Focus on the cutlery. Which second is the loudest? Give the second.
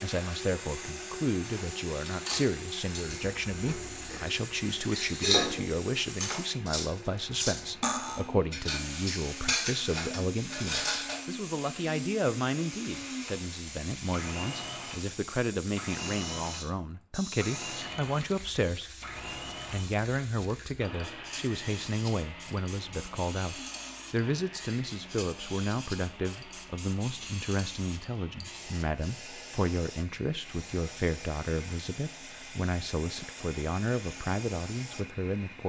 5 s.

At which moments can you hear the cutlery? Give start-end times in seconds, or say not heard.
1.4-11.2.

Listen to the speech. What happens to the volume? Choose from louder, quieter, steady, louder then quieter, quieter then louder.
steady.